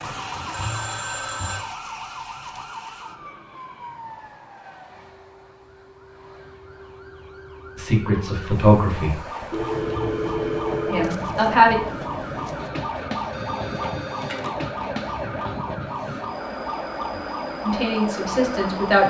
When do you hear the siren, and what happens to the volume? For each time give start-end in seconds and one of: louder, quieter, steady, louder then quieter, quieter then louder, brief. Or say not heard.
0.0-19.0 quieter then louder.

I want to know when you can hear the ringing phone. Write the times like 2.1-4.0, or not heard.
0.3-1.6, 9.5-11.2, 13.3-14.5.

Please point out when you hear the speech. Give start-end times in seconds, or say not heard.
7.8-9.2, 10.9-11.8, 17.6-19.0.